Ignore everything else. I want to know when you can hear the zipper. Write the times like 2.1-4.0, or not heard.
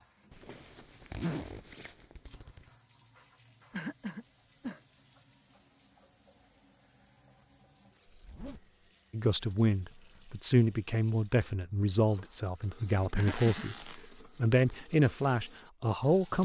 0.3-2.7, 8.1-8.8, 13.2-14.2.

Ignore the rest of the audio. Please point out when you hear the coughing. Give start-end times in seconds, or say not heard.
3.7-4.8, 13.2-13.7.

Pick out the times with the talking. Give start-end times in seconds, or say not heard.
9.1-16.4.